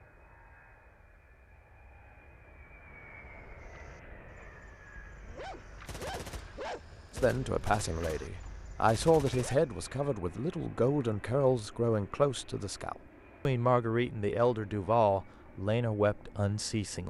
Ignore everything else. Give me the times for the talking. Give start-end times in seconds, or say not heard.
7.2-17.0.